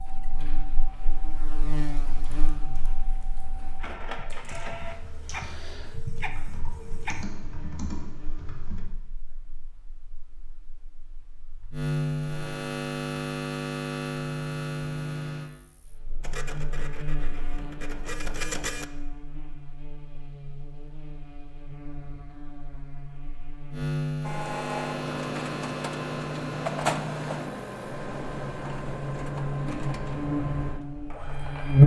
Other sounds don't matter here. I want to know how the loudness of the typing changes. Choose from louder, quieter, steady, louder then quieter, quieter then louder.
louder.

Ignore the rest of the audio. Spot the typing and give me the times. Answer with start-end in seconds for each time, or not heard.
2.1-8.8.